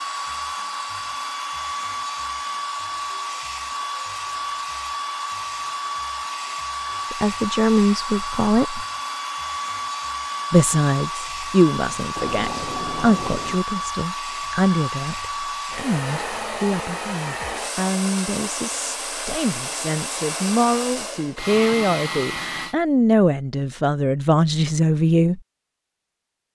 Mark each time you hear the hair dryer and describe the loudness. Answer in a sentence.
The hair dryer can be heard from 0.0 to 22.8 s, at a steady volume.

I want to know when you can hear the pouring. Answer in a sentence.
You can hear the pouring from 12.2 to 13.6 s.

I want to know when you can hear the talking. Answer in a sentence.
You can hear the talking from 7.1 to 8.8 s and from 10.5 to 25.4 s.